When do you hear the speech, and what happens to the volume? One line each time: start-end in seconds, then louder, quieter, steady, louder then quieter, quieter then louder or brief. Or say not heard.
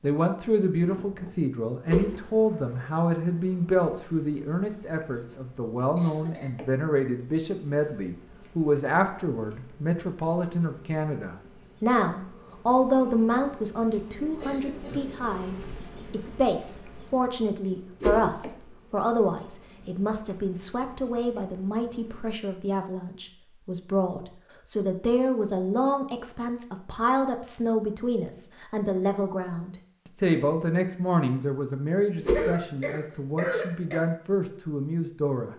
0.0-35.5 steady.